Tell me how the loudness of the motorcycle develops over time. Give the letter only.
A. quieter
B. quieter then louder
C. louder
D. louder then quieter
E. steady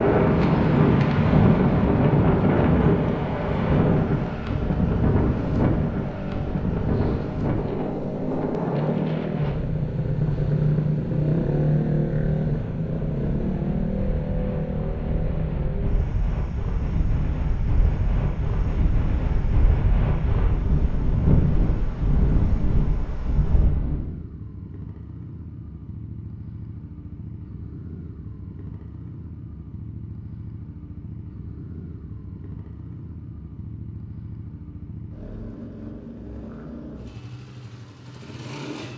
A.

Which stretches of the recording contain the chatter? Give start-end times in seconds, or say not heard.
not heard.